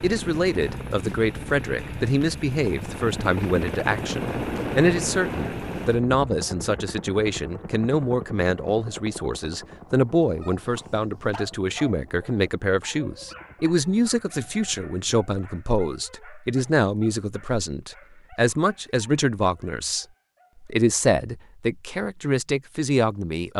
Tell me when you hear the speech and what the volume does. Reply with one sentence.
The speech can be heard from 0.0 to 23.5 s, at a steady volume.